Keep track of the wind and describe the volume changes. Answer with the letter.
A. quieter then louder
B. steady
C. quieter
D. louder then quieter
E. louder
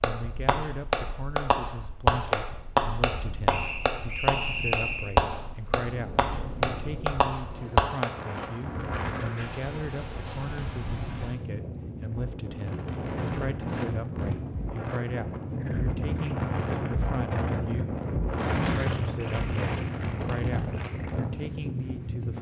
E.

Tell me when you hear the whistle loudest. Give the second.
5 s.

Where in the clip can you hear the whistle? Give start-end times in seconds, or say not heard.
3.5-5.2.